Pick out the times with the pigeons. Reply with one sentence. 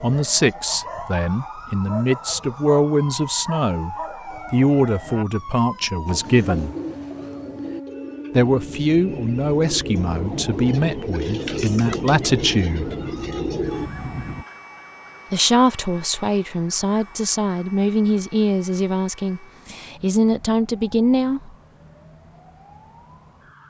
The pigeons can be heard from 6.0 to 13.9 s.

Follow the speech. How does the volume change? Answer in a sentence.
The volume of the speech stays about the same.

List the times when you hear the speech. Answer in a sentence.
You can hear the speech from 0.0 to 6.8 s, from 8.3 to 12.9 s and from 15.3 to 21.5 s.